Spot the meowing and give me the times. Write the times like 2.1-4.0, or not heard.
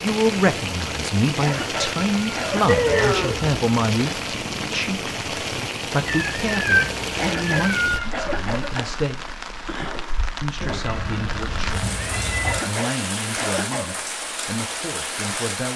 2.6-3.5, 6.0-8.1, 10.6-12.6.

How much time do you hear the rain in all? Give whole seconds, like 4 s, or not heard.
16 s.